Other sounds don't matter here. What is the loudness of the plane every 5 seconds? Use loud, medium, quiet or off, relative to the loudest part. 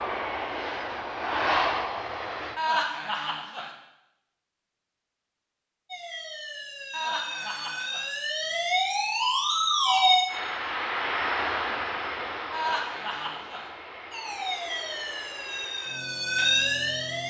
loud, off, loud, quiet.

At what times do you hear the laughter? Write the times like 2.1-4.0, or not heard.
2.5-3.7, 6.9-8.1, 12.5-13.7.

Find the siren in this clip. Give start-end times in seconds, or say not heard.
5.8-10.2, 14.1-17.2.